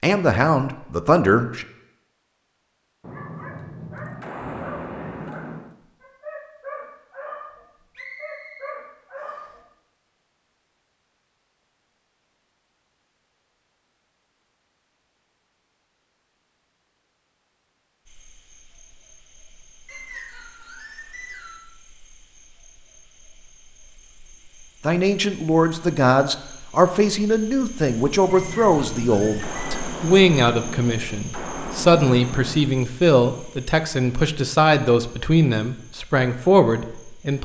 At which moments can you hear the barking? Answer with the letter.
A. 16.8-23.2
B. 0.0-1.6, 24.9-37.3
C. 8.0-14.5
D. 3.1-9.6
D.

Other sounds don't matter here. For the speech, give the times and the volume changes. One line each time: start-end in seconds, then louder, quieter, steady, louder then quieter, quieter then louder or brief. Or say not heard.
0.0-1.6 brief
24.9-37.3 steady.